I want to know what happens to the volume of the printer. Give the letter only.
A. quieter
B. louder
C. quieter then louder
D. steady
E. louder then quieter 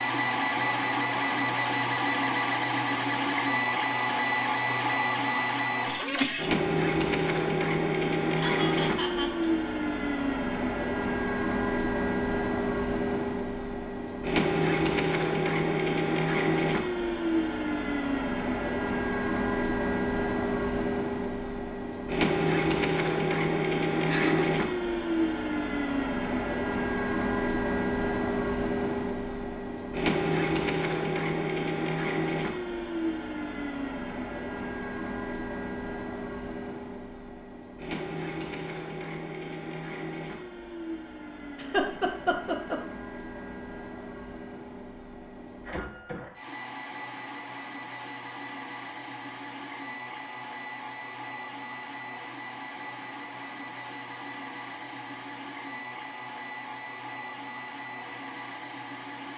A.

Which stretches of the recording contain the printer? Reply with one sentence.
You can hear the printer from 0.0 to 59.3 s.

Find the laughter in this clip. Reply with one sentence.
You can hear the laughter from 8.3 to 9.5 s, from 24.1 to 24.5 s and from 41.5 to 42.8 s.